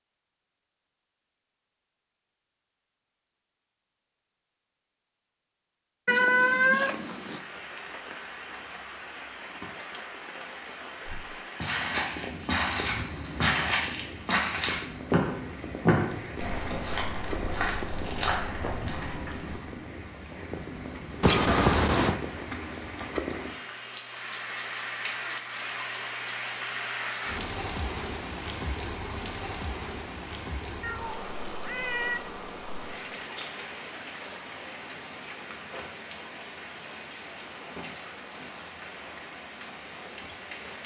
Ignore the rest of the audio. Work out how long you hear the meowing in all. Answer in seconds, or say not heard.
4 s.